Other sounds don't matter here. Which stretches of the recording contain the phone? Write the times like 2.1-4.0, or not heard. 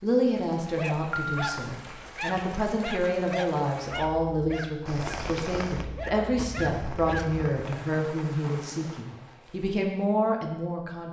0.9-1.4, 6.3-7.5.